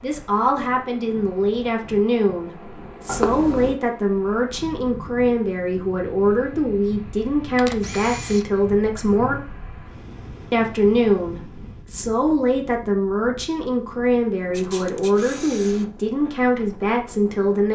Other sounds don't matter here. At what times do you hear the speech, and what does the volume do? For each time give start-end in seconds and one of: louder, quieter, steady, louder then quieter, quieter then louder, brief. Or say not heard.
0.0-9.4 steady
10.5-17.7 steady.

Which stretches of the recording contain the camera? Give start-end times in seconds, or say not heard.
3.0-3.8, 7.5-8.4, 14.5-15.8.